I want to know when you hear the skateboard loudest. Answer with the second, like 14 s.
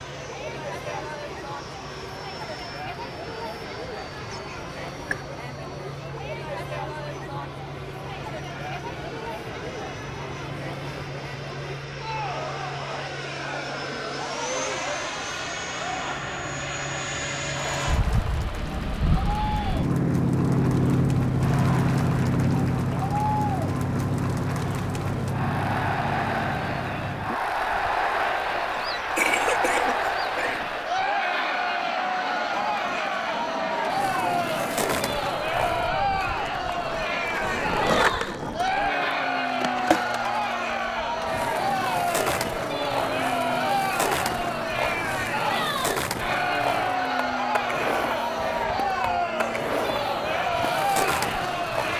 38 s.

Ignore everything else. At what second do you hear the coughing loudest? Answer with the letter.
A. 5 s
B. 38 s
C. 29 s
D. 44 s
C.